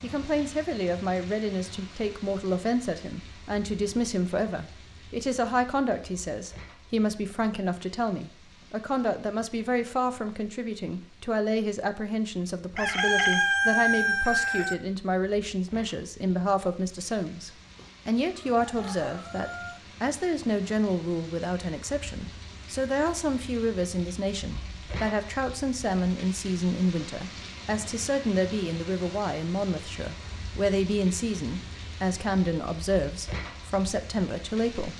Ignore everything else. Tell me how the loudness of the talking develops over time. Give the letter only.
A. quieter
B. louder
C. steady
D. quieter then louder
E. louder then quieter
C.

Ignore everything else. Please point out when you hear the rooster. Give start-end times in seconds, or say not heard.
12.8-14.8, 17.8-19.8.